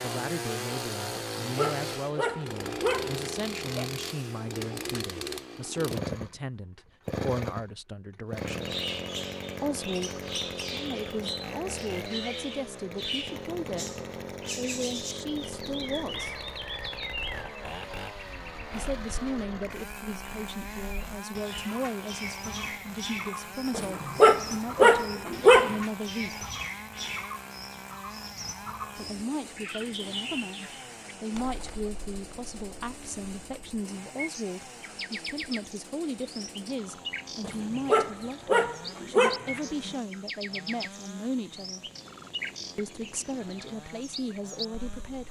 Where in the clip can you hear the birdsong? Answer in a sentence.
You can hear the birdsong from 8.4 to 45.2 s.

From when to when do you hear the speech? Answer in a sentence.
You can hear the speech from 0.0 to 8.8 s, from 9.6 to 13.9 s, from 14.6 to 16.4 s, from 18.7 to 26.5 s, from 28.9 to 41.9 s and from 42.8 to 45.2 s.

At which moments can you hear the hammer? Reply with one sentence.
The hammer can't be heard in this clip.